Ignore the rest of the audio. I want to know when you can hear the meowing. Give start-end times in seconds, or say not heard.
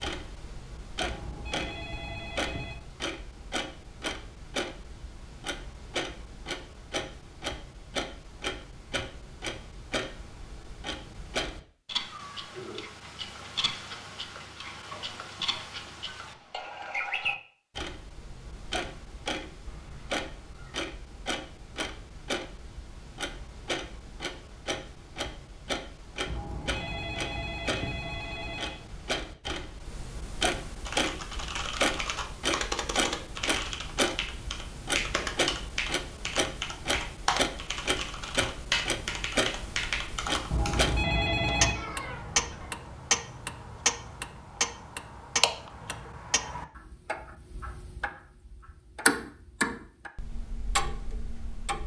12.1-12.8, 19.6-20.9, 41.8-42.8.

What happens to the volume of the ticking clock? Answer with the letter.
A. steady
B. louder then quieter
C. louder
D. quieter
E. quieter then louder
C.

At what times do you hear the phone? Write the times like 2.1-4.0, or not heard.
0.9-2.8, 26.2-28.8, 40.5-41.8.